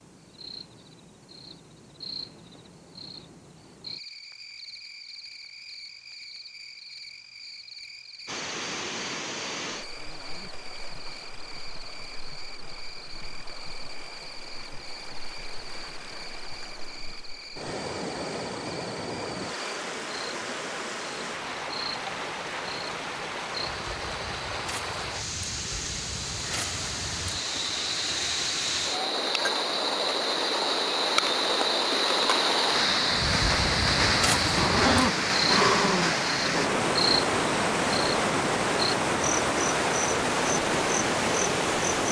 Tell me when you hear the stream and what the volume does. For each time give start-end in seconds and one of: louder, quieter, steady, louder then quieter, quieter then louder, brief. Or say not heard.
8.2-42.0 louder.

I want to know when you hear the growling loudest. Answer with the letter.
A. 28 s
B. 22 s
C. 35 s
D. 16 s
C.